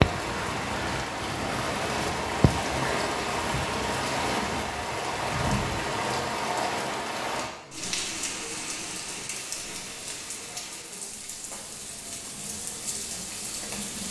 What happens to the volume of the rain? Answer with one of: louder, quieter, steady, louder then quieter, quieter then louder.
quieter.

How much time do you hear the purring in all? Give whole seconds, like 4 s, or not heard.
5 s.